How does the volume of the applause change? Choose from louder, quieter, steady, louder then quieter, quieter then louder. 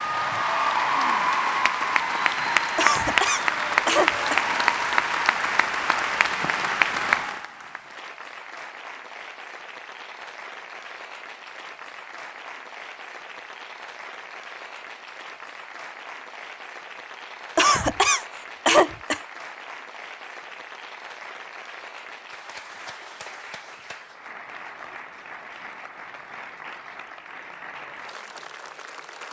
quieter.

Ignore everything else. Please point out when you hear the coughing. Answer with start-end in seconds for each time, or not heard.
2.8-4.4, 17.6-19.2.